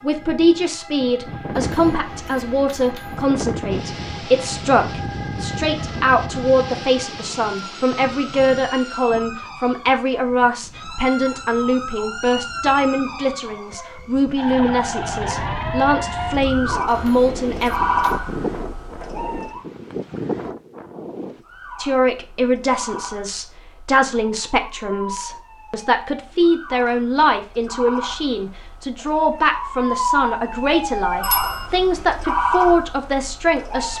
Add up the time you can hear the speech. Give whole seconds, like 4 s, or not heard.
30 s.